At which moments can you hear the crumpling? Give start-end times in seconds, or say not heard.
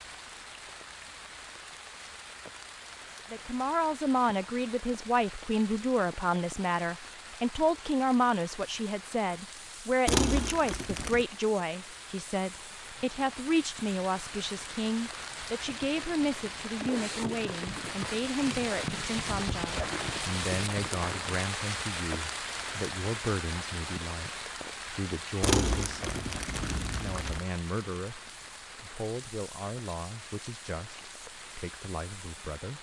10.1-11.2, 25.4-27.4.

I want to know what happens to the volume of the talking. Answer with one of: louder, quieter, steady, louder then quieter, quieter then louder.
quieter.